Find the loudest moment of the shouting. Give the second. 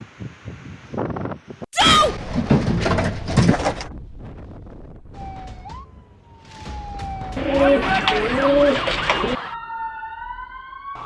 2 s.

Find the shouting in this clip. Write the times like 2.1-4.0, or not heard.
1.7-2.1, 7.5-8.6.